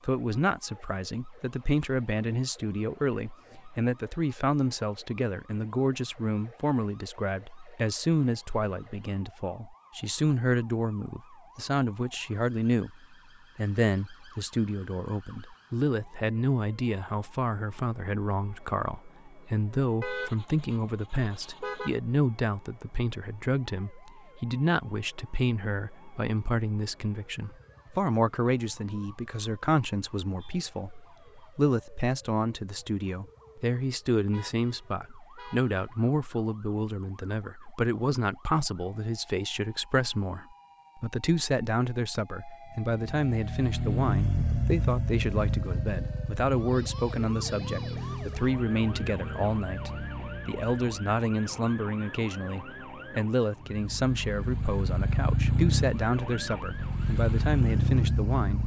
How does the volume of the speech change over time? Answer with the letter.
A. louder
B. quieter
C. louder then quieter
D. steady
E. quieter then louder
D.